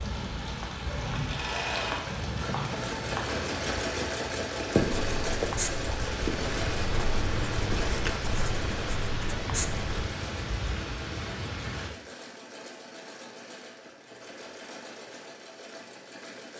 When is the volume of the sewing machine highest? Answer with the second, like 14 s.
4 s.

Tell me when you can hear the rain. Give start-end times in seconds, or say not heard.
0.0-11.9.